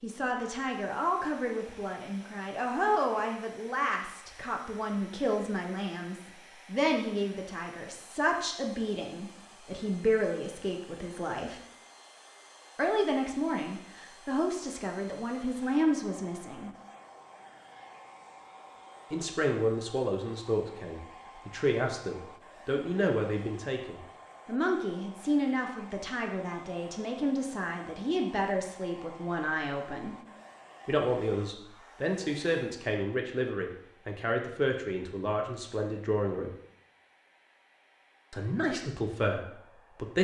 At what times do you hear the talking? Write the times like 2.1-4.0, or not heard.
0.0-11.6, 12.8-16.7, 19.1-30.1, 30.9-36.5, 38.3-40.2.